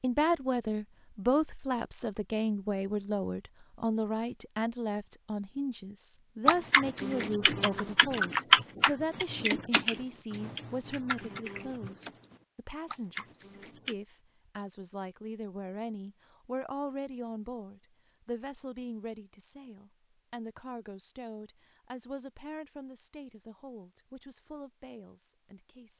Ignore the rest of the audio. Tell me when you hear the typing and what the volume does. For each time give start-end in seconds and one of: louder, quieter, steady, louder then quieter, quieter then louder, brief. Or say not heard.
6.5-13.9 louder then quieter.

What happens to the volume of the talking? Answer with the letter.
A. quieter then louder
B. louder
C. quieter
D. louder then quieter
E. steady
C.